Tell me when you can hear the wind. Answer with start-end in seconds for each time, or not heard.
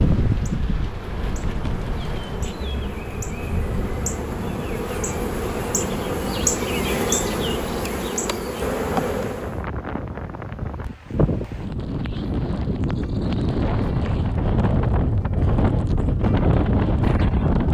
0.0-17.6.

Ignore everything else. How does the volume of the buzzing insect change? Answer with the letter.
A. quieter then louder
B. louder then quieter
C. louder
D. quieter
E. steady
C.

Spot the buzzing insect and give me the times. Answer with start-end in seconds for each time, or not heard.
0.2-9.7.